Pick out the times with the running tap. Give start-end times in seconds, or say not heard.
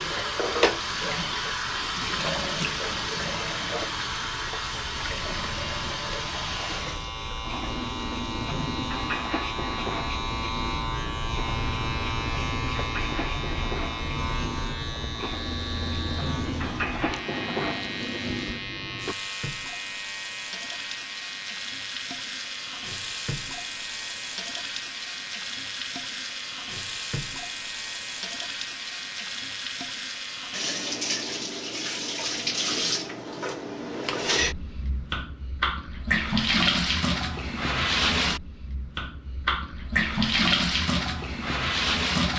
0.0-42.3.